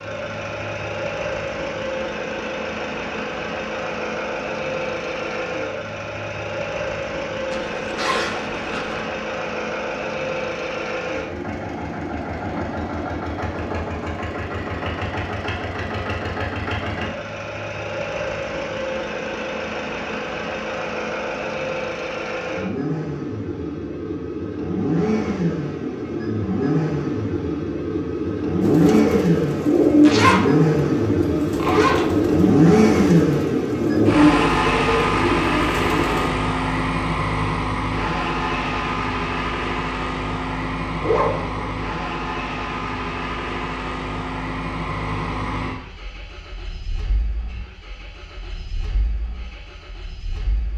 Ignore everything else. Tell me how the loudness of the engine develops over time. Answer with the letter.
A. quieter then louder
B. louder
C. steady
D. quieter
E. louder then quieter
E.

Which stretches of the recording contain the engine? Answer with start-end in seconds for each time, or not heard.
0.0-50.7.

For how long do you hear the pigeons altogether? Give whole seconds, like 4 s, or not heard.
8 s.